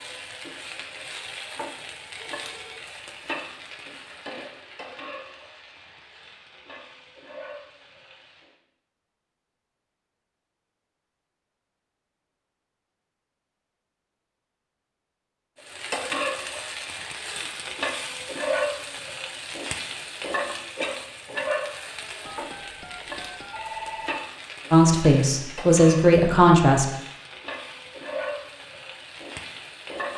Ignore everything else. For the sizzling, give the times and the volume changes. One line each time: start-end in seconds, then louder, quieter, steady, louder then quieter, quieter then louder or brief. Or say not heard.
0.0-8.6 quieter
15.6-30.1 quieter.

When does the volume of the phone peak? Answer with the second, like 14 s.
24 s.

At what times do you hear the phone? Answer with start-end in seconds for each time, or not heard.
2.0-2.9, 17.2-17.6, 22.2-24.2.